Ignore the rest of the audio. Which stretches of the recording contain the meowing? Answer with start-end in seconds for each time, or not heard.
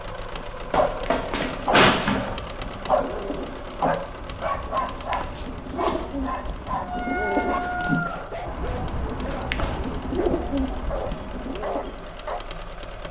6.7-8.2.